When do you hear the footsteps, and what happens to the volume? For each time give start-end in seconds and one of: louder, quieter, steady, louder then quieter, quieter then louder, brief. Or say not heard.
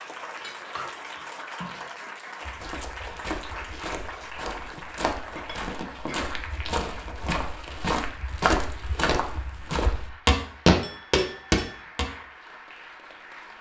2.5-12.1 louder.